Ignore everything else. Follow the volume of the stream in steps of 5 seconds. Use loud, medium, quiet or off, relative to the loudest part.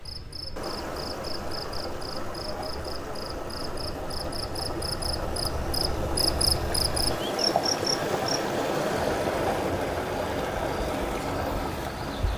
medium, loud, loud.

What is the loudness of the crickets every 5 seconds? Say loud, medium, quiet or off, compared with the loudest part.
medium, loud, medium.